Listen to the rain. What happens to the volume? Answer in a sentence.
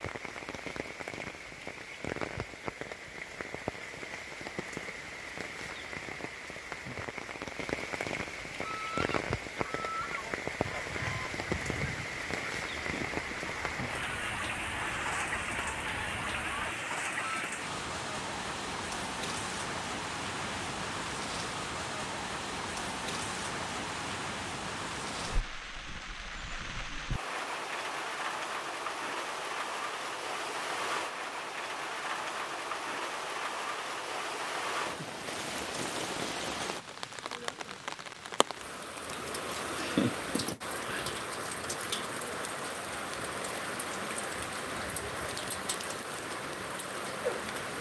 The loudness of the rain stays about the same.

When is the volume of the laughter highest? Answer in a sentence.
The volume of the laughter peaks at 40 seconds.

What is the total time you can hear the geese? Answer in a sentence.
The geese can be heard for 9 seconds in total.